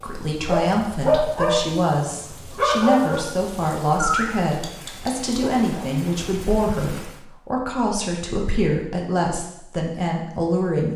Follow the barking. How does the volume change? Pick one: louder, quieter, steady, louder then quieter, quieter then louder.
quieter.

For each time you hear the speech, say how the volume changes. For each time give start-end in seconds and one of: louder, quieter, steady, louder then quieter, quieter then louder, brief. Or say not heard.
0.0-10.9 steady.